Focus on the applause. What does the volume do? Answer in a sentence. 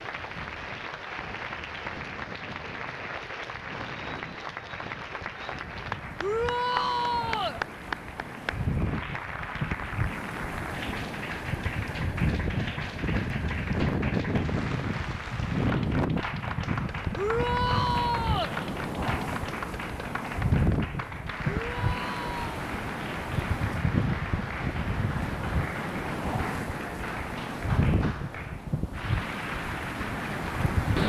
The volume of the applause stays about the same.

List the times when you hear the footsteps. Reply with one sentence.
You can't hear the footsteps here.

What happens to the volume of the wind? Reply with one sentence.
The loudness of the wind goes up.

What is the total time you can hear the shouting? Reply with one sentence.
You can hear the shouting for 4 seconds altogether.